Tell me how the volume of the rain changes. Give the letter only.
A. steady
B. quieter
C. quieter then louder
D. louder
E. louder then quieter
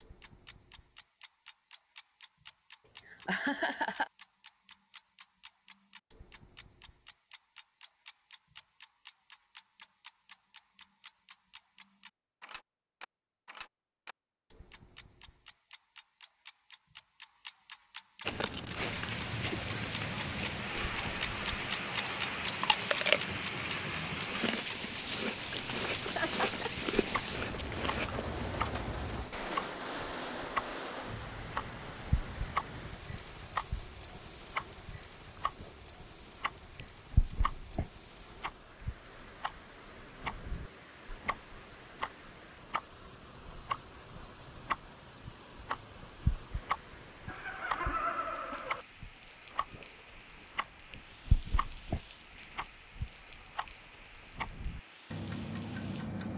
B.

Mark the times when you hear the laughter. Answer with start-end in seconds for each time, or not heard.
2.9-4.1, 26.1-26.8, 47.2-48.9.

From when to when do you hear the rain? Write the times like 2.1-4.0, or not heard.
18.8-56.3.